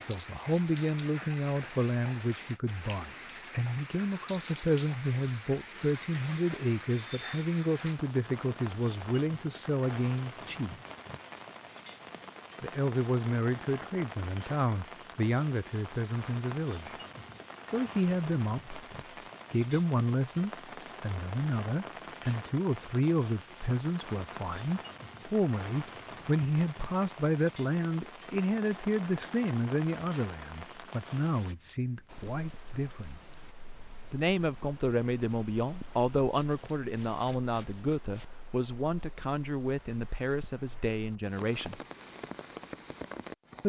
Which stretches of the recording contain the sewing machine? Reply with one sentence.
The sewing machine can't be heard in this clip.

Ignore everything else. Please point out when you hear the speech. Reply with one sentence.
You can hear the speech from 0.0 to 10.8 s, from 12.6 to 16.9 s, from 17.6 to 18.8 s, from 19.5 to 33.2 s and from 34.1 to 41.8 s.